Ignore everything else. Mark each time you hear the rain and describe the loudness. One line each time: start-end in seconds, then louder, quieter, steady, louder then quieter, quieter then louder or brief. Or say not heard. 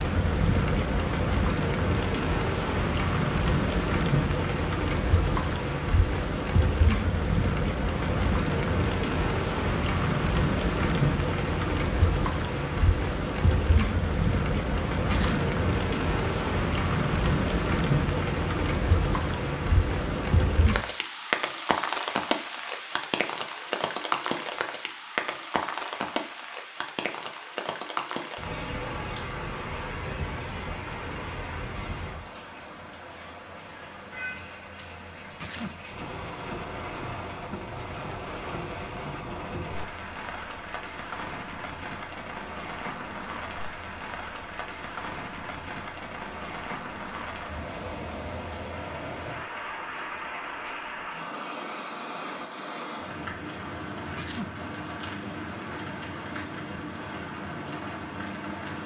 0.0-58.8 quieter.